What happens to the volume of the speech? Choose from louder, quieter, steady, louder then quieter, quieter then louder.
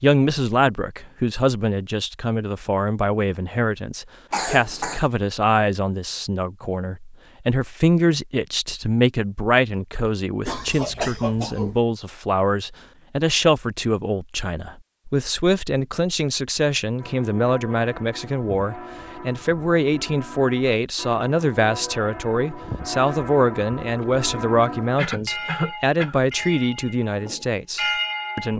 steady.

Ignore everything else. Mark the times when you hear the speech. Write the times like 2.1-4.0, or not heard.
0.0-28.5.